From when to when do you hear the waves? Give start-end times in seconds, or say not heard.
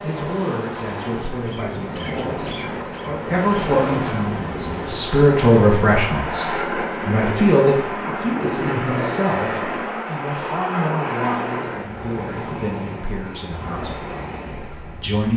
0.0-15.3.